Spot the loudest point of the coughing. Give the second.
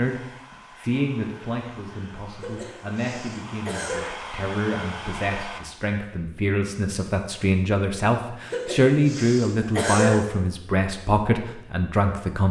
10 s.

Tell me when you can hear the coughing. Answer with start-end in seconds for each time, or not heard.
2.4-4.2, 8.5-10.2.